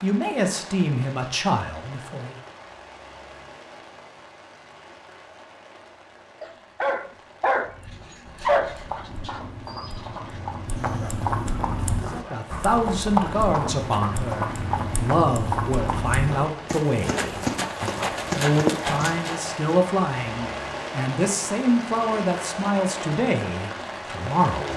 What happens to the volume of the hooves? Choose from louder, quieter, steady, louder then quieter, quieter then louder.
louder.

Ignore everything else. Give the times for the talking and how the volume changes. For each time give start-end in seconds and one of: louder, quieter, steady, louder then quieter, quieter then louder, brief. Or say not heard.
0.0-2.4 brief
12.1-24.7 steady.